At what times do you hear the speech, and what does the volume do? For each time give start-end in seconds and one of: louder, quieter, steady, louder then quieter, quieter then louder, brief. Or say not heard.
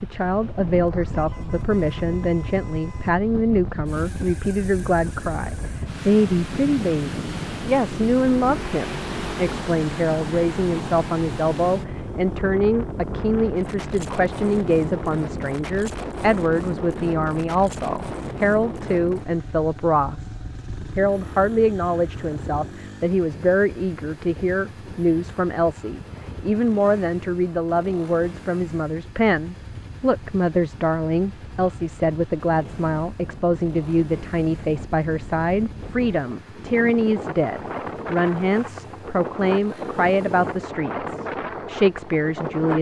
0.0-42.7 steady.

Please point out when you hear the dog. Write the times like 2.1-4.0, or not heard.
not heard.